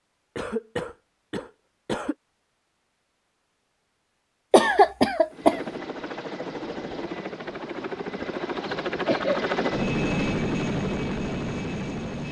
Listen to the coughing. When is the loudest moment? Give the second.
5 s.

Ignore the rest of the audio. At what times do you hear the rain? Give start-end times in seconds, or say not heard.
not heard.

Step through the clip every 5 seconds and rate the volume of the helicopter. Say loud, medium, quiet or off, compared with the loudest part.
off, loud, loud.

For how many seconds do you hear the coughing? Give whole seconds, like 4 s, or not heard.
4 s.